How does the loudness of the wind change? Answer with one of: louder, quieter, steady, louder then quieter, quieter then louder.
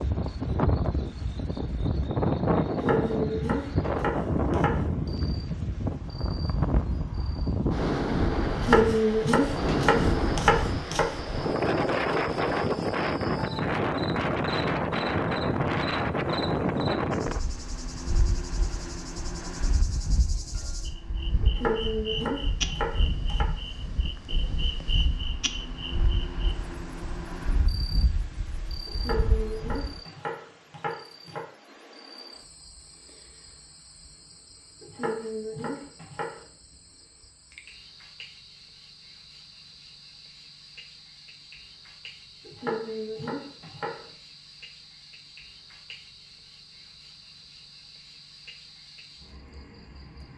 quieter.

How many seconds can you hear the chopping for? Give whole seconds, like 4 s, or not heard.
13 s.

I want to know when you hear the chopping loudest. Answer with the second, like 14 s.
9 s.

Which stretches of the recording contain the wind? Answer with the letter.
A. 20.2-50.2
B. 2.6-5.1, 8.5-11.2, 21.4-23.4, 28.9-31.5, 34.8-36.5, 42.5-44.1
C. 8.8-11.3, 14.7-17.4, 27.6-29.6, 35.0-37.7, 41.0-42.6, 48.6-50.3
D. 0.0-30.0
D.